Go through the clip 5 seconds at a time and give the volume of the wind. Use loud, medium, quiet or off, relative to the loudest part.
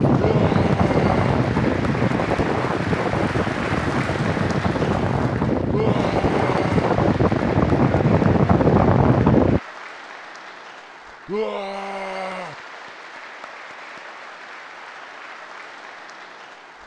loud, loud, off, off.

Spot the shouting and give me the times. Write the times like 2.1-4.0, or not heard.
0.1-1.4, 5.7-6.8, 11.2-12.6.